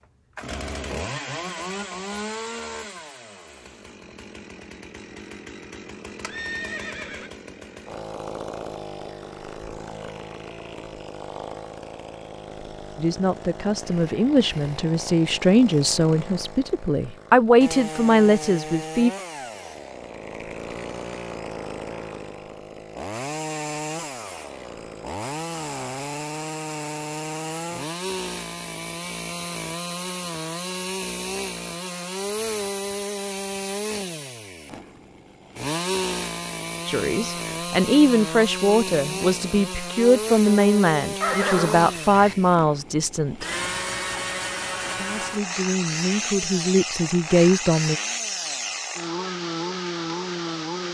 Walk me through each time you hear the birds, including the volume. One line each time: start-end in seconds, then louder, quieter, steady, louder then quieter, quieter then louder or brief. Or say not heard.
not heard.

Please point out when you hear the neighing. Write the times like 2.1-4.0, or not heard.
6.2-7.3, 41.2-42.4.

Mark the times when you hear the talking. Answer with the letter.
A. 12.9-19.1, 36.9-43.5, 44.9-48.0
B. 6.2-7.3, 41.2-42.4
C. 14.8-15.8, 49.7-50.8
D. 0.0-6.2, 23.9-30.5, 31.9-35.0
A.